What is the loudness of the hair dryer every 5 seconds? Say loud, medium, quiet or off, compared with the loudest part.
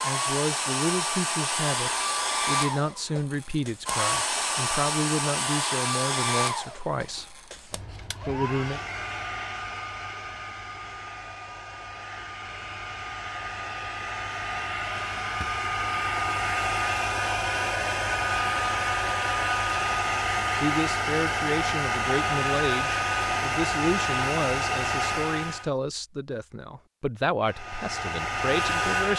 loud, medium, medium, loud, loud, loud.